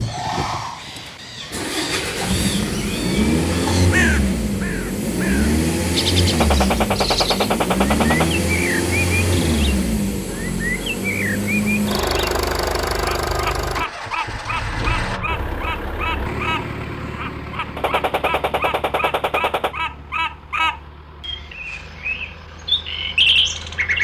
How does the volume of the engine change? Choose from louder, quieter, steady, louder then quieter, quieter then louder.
quieter.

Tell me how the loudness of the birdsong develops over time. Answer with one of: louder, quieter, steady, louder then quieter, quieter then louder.
louder.